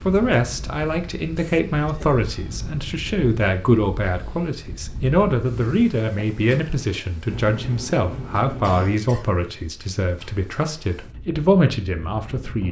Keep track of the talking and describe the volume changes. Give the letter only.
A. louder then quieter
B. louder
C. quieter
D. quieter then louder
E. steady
E.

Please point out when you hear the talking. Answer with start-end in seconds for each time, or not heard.
0.1-12.6.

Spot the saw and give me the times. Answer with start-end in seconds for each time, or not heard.
not heard.